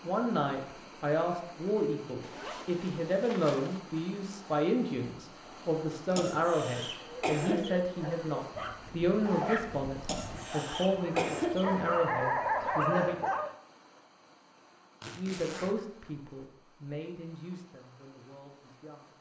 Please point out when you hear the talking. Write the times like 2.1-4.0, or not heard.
0.0-13.2, 15.2-19.1.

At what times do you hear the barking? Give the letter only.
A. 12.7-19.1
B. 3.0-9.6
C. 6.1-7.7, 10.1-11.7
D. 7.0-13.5
D.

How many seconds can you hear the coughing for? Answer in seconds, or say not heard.
3 s.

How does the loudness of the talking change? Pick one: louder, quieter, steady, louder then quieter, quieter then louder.
quieter.